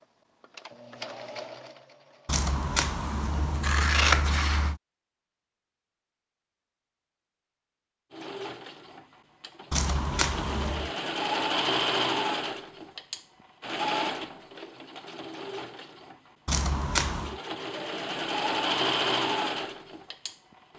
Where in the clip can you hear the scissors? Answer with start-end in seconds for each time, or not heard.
2.2-4.8, 9.7-10.9, 16.4-17.4.